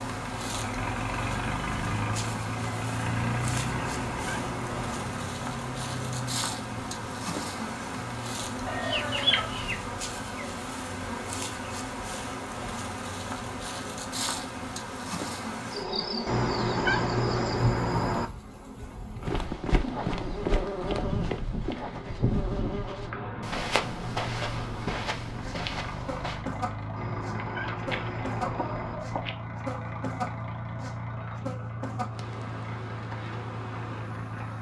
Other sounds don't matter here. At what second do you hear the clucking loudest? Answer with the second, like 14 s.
9 s.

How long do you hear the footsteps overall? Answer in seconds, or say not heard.
7 s.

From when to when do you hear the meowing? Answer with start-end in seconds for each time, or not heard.
3.6-5.2, 16.2-18.3, 26.9-28.9.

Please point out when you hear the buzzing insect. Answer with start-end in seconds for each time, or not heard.
0.0-34.5.